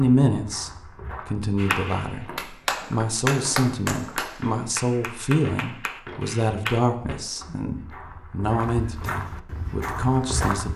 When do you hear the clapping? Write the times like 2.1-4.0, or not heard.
1.6-6.8.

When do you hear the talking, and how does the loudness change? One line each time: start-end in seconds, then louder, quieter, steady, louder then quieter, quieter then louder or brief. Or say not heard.
0.0-2.2 brief
2.9-10.7 steady.